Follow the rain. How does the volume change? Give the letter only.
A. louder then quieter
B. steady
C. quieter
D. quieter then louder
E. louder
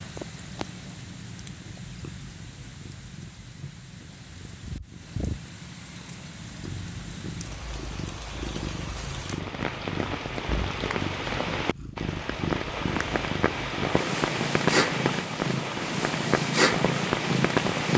E.